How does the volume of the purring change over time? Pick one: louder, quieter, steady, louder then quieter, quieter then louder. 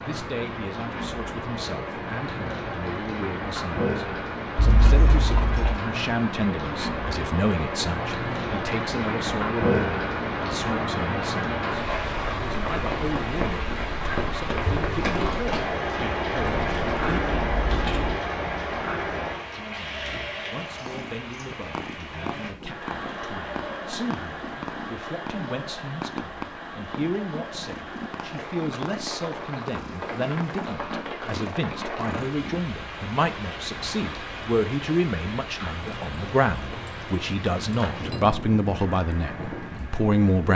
steady.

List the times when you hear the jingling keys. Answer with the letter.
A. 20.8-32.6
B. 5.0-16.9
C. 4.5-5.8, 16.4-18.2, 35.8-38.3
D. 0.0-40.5
C.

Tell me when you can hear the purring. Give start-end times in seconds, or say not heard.
20.8-32.6.